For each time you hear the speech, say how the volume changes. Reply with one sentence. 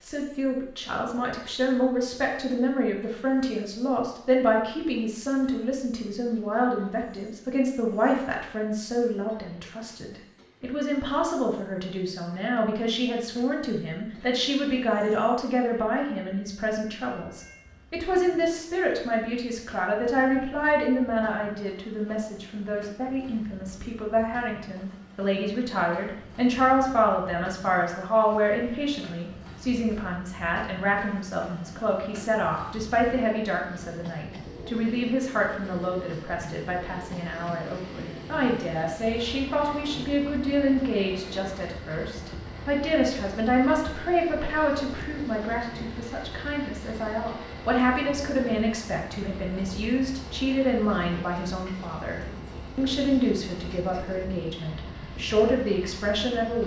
You can hear the speech from 0.0 to 56.6 s, at a steady volume.